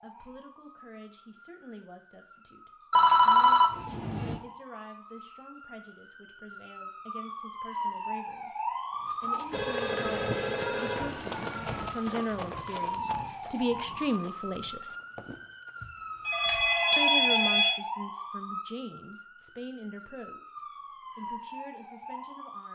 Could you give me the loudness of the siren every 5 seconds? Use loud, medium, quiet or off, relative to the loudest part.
quiet, loud, loud, loud, medium.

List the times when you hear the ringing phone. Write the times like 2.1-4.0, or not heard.
2.9-4.3, 9.5-11.8, 15.8-17.8.